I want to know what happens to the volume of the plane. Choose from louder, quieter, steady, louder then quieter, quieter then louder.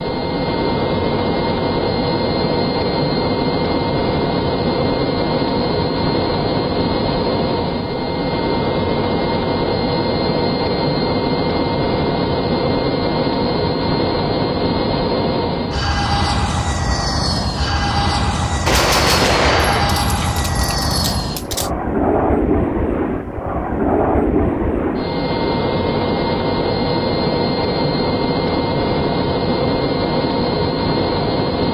steady.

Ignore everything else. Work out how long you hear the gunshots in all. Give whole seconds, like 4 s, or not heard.
3 s.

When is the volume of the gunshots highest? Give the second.
19 s.